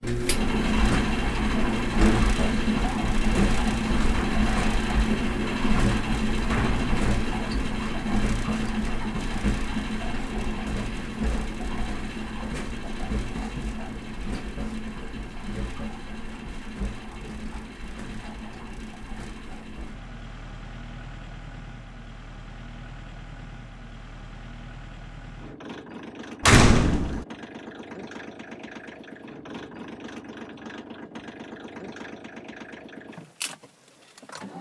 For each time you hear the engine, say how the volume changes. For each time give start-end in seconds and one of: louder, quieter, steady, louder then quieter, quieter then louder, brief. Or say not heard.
0.0-34.5 quieter.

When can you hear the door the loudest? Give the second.
27 s.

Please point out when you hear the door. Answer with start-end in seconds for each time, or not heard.
6.5-7.0, 26.4-27.2.